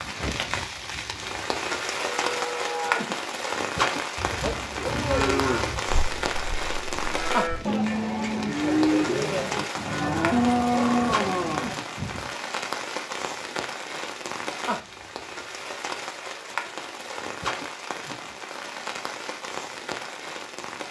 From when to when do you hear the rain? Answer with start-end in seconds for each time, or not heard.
0.0-20.8.